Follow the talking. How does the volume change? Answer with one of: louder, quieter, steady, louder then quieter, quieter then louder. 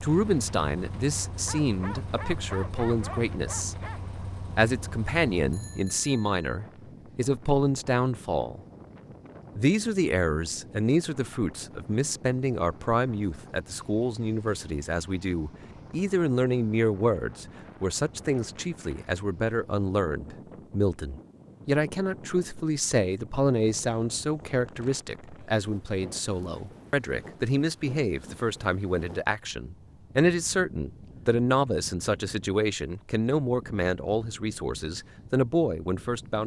steady.